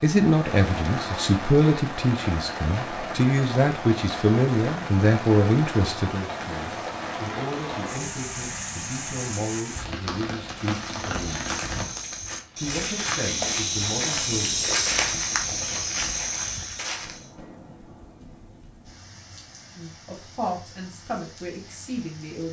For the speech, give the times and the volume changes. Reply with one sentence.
You can hear the speech from 0.0 to 11.6 s, getting quieter; briefly from 12.6 to 14.6 s; and briefly from 19.8 to 22.4 s.